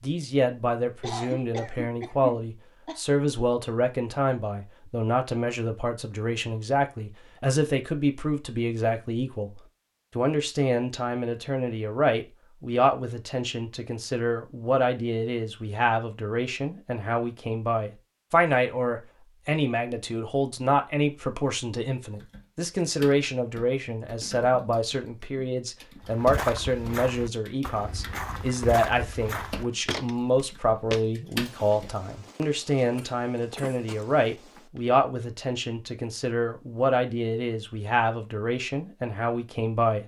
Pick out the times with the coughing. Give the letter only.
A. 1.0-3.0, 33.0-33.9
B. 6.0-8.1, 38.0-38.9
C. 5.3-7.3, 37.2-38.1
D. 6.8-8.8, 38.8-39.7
A.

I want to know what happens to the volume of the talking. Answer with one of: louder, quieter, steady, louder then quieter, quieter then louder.
steady.